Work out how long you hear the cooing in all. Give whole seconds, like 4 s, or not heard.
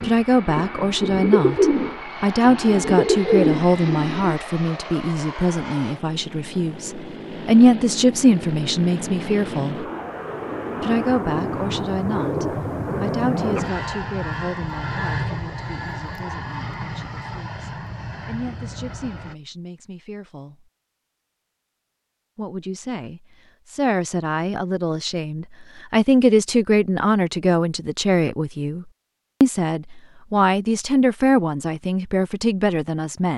4 s.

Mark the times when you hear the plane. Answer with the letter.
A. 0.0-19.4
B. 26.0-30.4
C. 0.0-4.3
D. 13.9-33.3
A.